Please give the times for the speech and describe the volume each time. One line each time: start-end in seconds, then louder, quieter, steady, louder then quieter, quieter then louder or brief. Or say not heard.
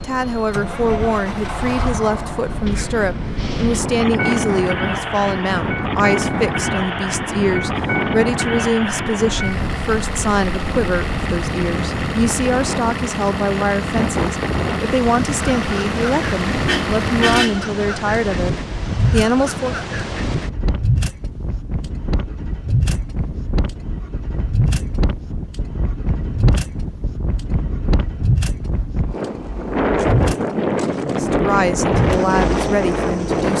0.0-19.8 steady
31.1-33.5 brief.